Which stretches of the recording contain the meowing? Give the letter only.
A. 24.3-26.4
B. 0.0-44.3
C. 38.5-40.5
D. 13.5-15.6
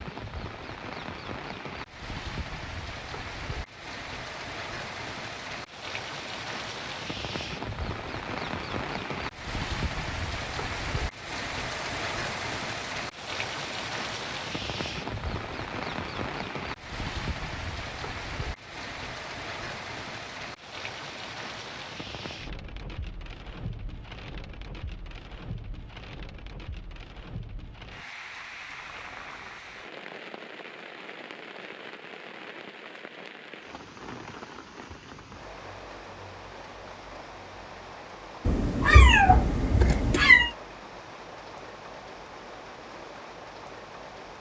C.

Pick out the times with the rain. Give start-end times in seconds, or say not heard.
0.0-44.3.